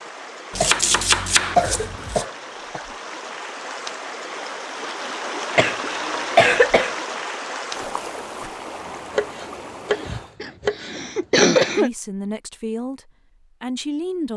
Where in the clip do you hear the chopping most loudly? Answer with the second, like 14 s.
1 s.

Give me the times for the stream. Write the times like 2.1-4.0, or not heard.
0.0-10.3.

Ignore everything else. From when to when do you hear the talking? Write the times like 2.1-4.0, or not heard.
11.8-14.3.